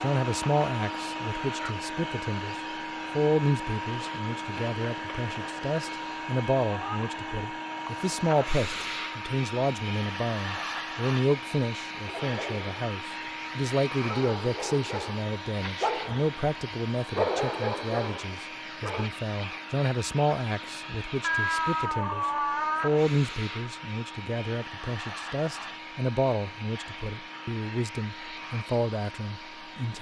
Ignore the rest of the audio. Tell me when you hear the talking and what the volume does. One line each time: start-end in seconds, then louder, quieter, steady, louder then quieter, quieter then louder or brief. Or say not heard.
0.0-29.9 steady.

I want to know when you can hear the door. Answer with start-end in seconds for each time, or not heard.
not heard.